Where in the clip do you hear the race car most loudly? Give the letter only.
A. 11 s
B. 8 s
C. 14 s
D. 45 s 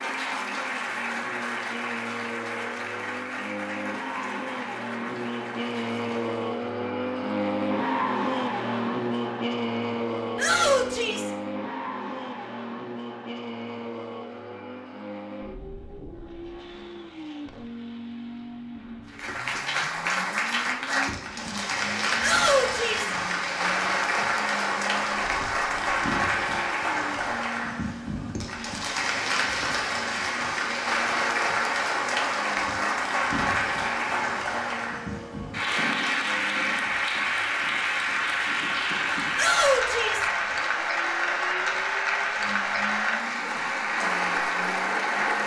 B.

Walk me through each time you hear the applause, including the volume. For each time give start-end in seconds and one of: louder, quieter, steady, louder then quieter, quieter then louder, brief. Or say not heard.
0.0-6.6 quieter
19.1-45.4 steady.